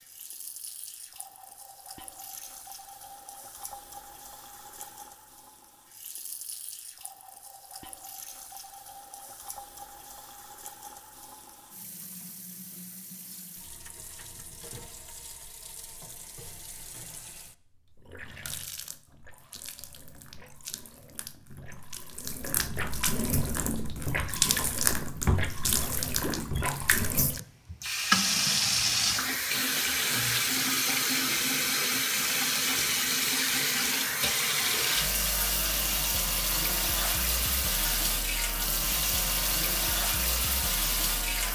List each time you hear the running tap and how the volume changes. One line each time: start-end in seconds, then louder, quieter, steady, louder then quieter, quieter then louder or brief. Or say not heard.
0.0-41.5 louder.